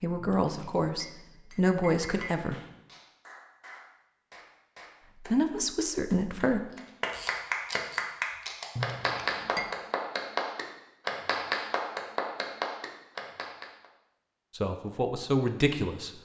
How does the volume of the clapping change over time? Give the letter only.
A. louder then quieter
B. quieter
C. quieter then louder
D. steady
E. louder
E.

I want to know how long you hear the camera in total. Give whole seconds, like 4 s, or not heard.
2 s.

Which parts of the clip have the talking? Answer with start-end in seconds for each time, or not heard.
0.0-2.5, 5.2-6.6, 14.6-16.1.